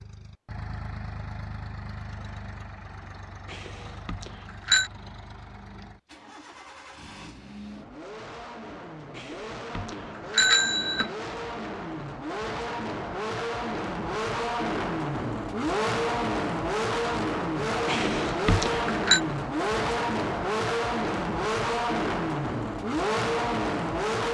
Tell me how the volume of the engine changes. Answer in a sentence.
The volume of the engine goes up.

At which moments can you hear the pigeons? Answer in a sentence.
The pigeons can't be heard in this clip.